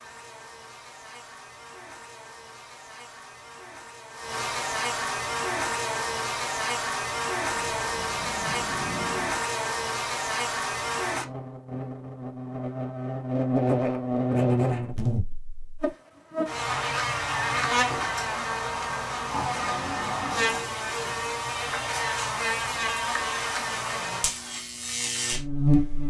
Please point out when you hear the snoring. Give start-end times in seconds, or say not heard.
7.5-9.4, 19.2-21.2.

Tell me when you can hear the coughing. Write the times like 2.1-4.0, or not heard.
not heard.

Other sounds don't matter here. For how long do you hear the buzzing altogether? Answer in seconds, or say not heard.
26 s.